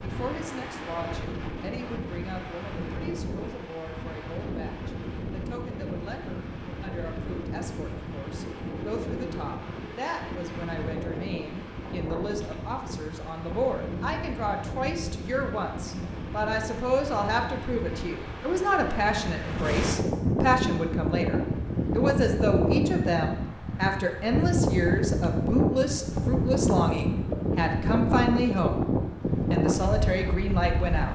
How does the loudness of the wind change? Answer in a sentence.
The volume of the wind goes up.